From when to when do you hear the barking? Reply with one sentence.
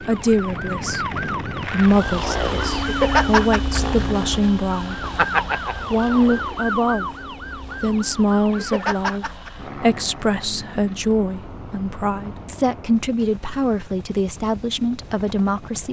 The barking can't be heard in this clip.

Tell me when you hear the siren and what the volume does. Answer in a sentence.
The siren can be heard from 0.0 to 9.5 s, getting louder then quieter.